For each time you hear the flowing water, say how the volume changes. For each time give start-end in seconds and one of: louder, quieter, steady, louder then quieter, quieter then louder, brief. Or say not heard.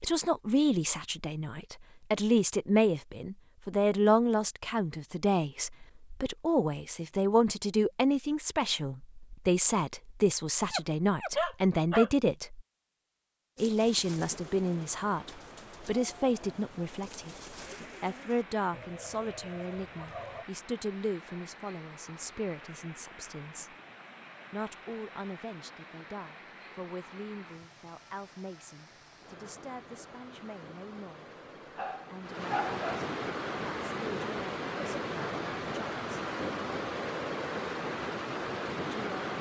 14.2-39.3 louder.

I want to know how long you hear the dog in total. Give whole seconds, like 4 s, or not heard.
3 s.